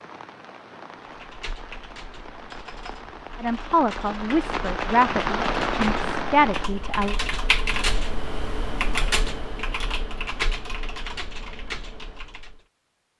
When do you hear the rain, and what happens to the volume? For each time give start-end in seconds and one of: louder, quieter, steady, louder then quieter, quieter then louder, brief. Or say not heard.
0.0-6.7 louder.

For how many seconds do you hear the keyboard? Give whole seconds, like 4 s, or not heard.
12 s.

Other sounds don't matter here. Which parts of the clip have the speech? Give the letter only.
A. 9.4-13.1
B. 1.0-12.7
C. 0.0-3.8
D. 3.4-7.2
D.